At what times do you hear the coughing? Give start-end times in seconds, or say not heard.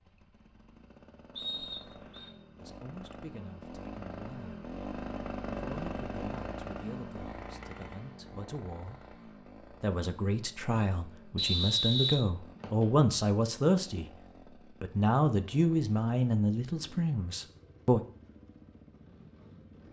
not heard.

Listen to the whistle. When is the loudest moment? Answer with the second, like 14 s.
12 s.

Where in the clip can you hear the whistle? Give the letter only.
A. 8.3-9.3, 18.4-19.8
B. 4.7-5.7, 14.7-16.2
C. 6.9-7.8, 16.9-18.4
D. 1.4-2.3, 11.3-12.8
D.